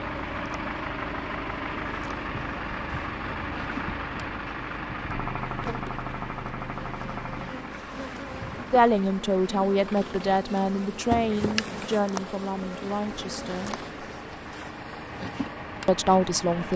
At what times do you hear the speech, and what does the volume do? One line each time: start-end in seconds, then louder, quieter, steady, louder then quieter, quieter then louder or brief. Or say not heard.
8.7-13.8 quieter
15.8-16.7 brief.